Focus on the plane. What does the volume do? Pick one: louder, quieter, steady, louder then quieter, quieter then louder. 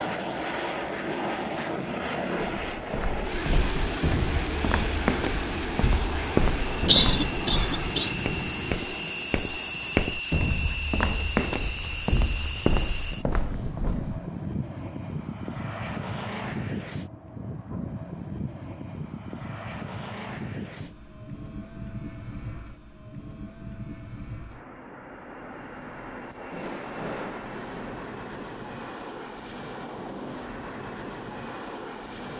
quieter.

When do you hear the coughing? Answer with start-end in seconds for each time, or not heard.
6.8-8.2.